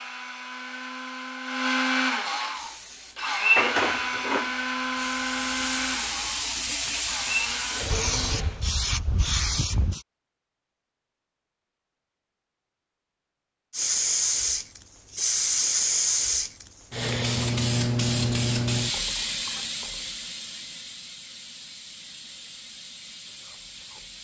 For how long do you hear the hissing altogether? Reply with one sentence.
The hissing can be heard for 18 seconds in total.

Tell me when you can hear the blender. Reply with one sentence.
The blender can be heard from 0.0 to 8.6 s.